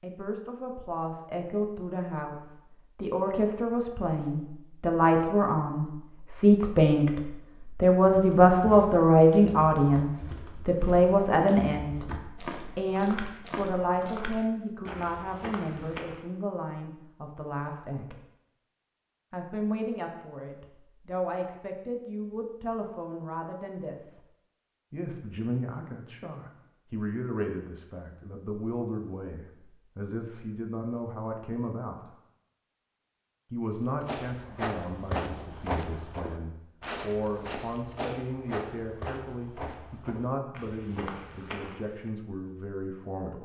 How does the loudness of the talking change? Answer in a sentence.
The volume of the talking goes down.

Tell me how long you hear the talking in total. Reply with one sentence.
The talking can be heard for 40 seconds in total.